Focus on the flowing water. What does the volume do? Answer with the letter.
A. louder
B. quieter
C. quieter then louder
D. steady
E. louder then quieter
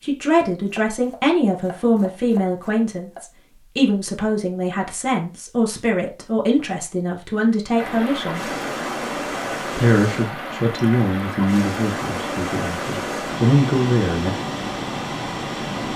D.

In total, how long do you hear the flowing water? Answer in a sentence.
You can hear the flowing water for 8 seconds altogether.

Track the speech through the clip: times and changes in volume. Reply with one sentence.
The speech can be heard from 0.0 to 8.5 s, at a steady volume; and from 9.8 to 14.3 s, getting quieter then louder.